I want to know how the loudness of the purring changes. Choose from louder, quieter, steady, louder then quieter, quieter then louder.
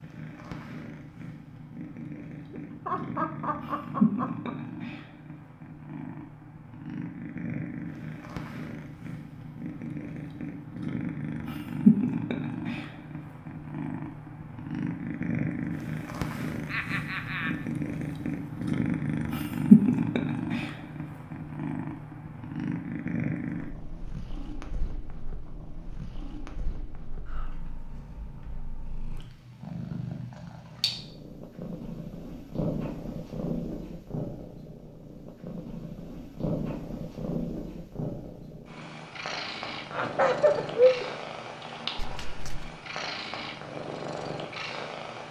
louder then quieter.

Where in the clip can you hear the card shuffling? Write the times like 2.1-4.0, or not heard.
42.0-42.8.